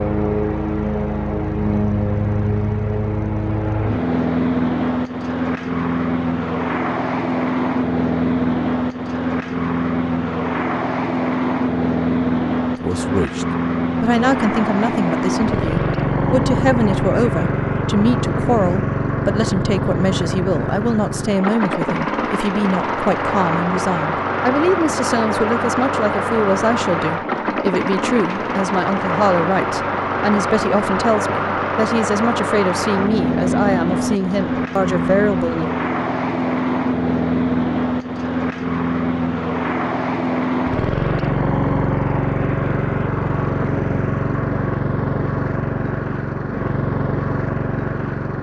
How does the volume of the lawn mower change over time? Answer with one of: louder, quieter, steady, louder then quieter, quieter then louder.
steady.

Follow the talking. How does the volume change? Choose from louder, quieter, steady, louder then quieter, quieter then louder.
steady.